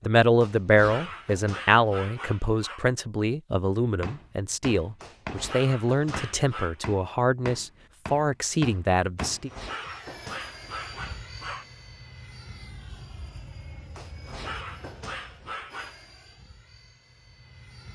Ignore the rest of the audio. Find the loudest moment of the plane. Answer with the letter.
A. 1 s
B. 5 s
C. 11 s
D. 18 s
C.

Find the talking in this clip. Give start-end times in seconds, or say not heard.
0.0-9.5.